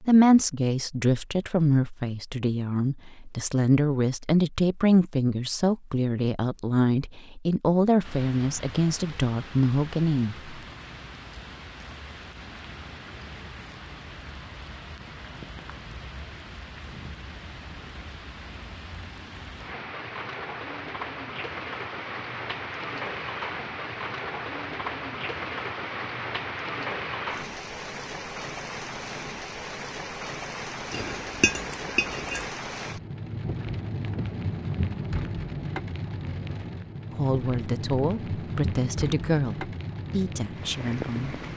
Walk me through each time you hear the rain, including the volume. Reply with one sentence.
You can hear the rain from 8.0 to 41.5 s, getting louder.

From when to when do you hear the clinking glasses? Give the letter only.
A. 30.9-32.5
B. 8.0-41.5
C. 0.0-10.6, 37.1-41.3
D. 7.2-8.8
A.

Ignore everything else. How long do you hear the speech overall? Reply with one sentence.
You can hear the speech for 15 seconds altogether.